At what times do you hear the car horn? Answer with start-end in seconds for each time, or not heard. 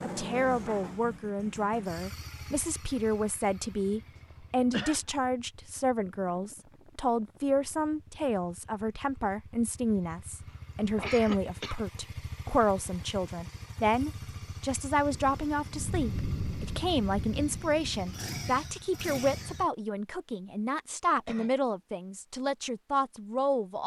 not heard.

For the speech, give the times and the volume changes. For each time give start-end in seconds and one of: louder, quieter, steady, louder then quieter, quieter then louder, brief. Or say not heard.
0.0-23.8 steady.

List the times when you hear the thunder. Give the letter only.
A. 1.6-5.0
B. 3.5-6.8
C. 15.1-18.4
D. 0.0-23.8
C.